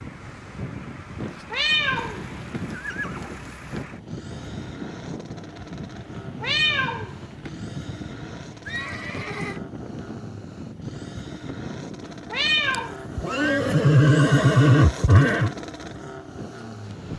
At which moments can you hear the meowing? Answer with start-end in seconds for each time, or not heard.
1.5-2.6, 6.2-7.5, 12.1-12.9.